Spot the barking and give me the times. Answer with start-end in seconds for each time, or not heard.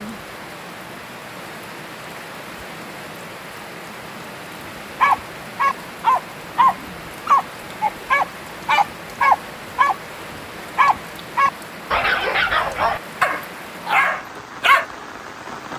5.0-14.8.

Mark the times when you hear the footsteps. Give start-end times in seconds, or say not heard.
not heard.